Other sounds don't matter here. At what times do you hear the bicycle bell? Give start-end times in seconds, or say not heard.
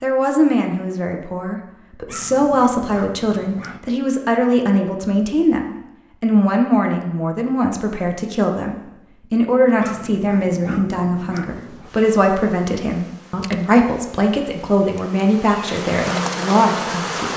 not heard.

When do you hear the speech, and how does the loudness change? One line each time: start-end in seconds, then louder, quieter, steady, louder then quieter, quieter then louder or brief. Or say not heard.
0.0-17.3 steady.